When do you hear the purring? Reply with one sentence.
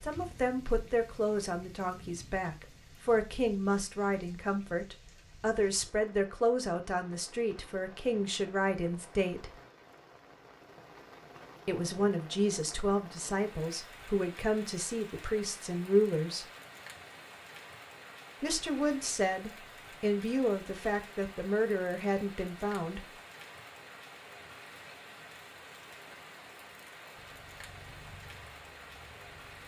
You can hear the purring from 27.1 to 29.6 s.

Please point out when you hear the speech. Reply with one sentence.
The speech can be heard from 0.0 to 9.5 s, from 11.7 to 16.4 s and from 18.4 to 23.0 s.